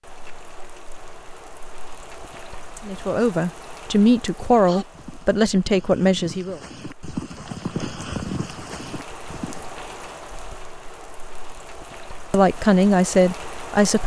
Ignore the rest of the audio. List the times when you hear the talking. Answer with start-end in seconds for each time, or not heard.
2.9-6.6, 12.3-14.0.